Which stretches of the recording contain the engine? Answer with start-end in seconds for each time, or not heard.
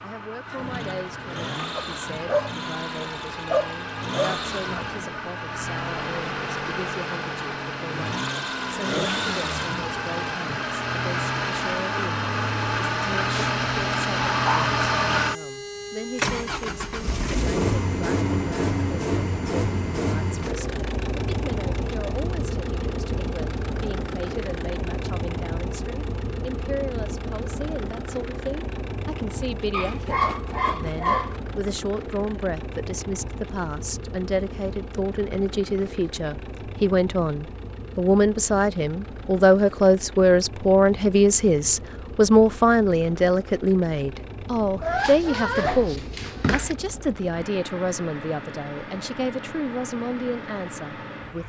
0.0-51.4.